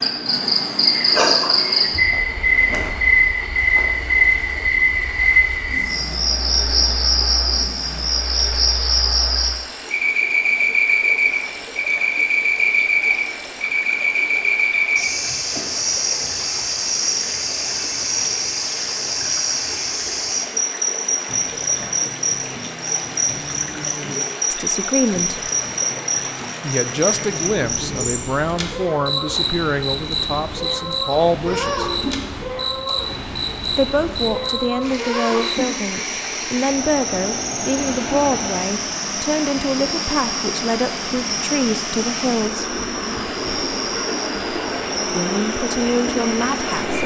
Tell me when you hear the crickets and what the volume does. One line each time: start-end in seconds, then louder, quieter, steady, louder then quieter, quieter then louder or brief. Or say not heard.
0.0-47.0 quieter.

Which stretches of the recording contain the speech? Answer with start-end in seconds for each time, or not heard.
24.5-25.5, 26.6-31.9, 33.8-42.7, 45.1-47.0.